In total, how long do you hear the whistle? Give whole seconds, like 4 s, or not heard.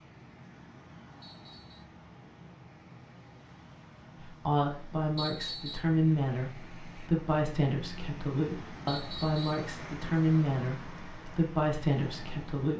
2 s.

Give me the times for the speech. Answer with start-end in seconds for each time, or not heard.
4.2-12.7.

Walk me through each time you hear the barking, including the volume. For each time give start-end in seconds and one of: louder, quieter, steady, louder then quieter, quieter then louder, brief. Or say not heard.
not heard.